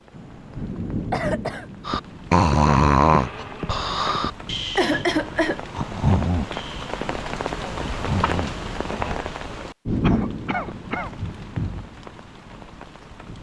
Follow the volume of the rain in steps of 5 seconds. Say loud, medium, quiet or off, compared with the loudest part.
medium, loud, loud.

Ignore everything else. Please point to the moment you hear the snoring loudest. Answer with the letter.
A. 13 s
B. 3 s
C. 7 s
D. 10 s
B.